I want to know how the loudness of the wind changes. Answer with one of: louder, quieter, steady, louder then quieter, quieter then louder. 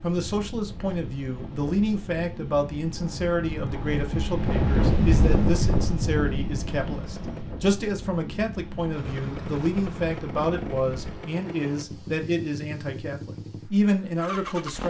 louder then quieter.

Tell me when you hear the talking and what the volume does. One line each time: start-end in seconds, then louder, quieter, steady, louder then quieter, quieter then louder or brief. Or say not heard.
0.0-14.8 steady.